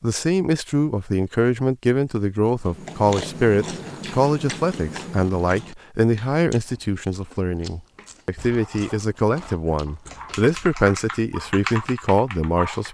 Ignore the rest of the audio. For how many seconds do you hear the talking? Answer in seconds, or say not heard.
13 s.